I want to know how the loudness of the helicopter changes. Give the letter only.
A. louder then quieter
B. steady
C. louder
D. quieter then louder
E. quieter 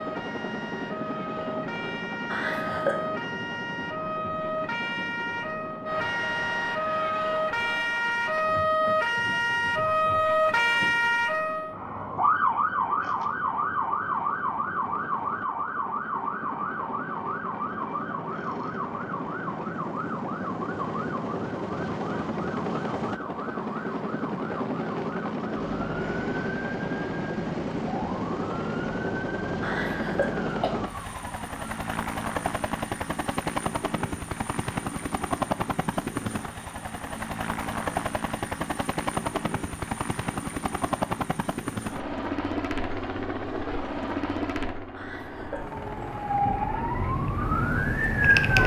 C.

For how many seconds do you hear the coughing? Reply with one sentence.
You can hear the coughing for 3 seconds altogether.